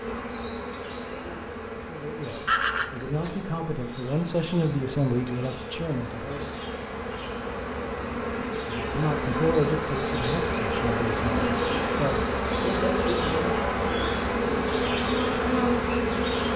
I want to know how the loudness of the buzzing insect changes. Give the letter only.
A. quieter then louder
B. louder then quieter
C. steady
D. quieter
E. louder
E.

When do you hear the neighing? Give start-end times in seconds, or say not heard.
2.5-3.4.